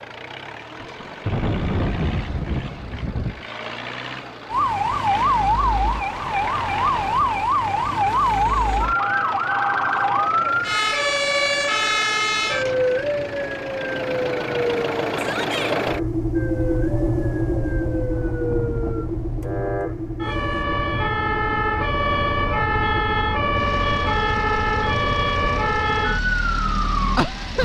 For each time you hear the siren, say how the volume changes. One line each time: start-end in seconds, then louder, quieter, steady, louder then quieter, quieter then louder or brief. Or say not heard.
4.5-27.6 quieter then louder.